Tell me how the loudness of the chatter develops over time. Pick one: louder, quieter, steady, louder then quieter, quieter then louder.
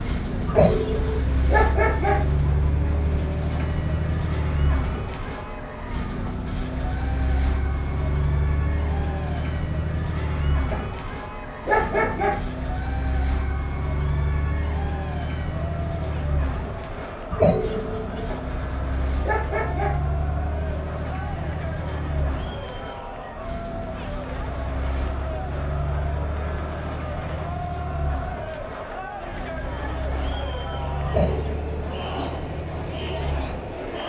louder.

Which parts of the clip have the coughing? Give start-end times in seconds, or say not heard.
0.5-1.3, 17.3-18.2, 31.1-32.3.